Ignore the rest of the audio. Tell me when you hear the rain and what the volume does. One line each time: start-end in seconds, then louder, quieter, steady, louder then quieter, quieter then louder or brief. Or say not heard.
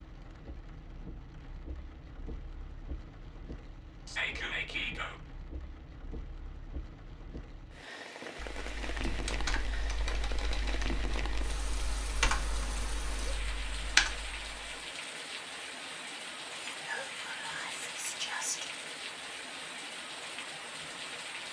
0.0-21.4 louder.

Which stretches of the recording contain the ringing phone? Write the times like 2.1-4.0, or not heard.
not heard.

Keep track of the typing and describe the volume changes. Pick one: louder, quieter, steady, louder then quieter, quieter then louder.
quieter then louder.